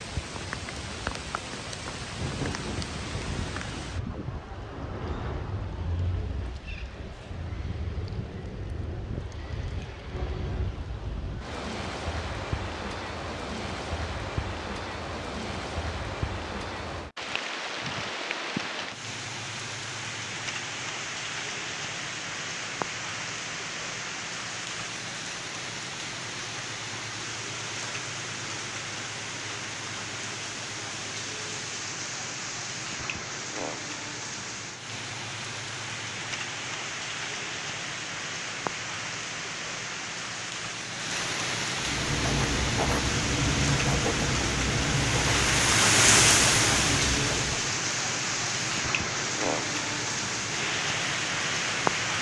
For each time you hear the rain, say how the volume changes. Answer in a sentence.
The rain can be heard from 0.0 to 52.1 s, getting louder.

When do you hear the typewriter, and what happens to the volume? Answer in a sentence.
The typewriter can't be heard in this clip.